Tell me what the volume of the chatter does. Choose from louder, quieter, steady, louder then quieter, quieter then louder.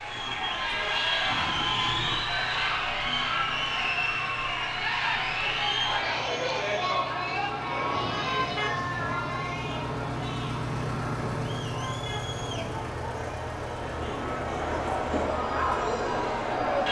quieter then louder.